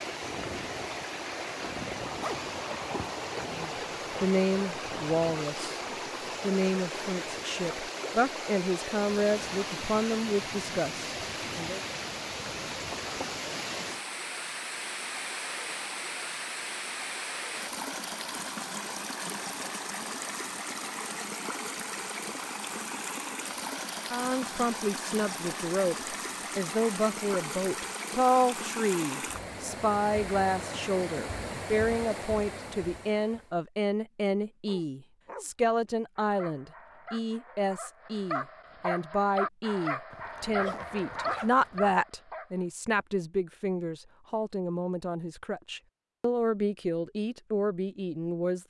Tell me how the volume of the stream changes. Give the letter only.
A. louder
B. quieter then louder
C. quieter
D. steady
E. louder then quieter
D.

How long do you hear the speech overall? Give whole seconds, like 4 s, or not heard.
32 s.